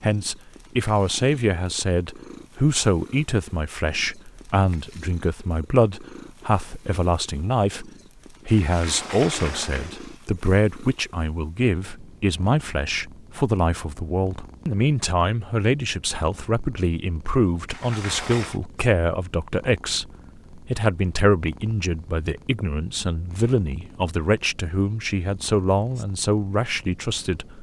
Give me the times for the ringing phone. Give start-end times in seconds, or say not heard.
not heard.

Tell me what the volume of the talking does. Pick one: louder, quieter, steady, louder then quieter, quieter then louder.
steady.